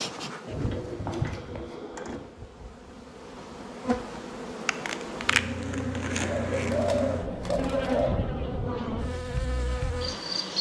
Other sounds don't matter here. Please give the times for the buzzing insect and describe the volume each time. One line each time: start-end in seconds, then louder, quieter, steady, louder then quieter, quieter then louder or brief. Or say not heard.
0.0-10.5 louder.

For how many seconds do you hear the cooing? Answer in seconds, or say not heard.
4 s.